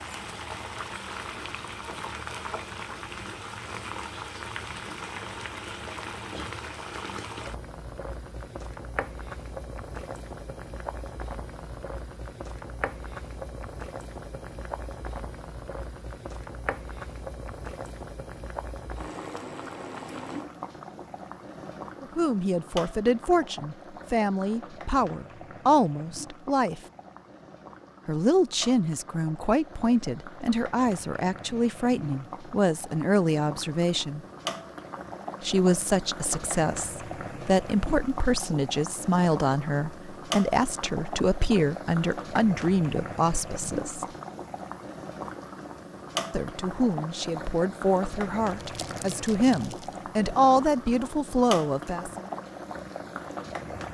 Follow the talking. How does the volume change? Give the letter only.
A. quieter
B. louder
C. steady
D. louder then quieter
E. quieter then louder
C.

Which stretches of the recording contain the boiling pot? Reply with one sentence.
The boiling pot can be heard from 0.0 to 53.8 s.